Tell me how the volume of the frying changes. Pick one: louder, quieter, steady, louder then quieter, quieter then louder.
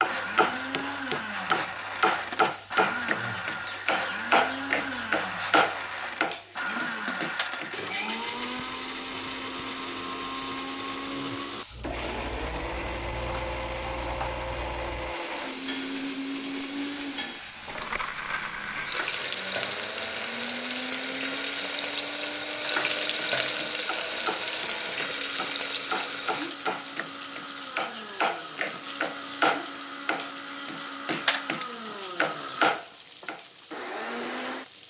louder then quieter.